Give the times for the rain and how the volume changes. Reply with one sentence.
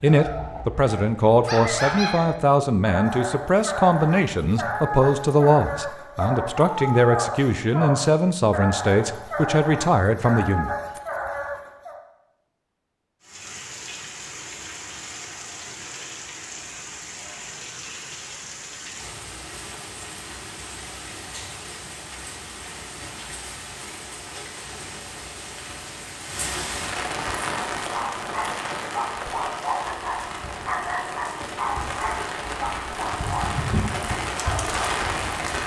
The rain can be heard from 13.2 to 35.6 s, getting louder.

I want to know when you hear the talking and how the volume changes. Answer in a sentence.
You can hear the talking from 0.0 to 10.7 s, at a steady volume.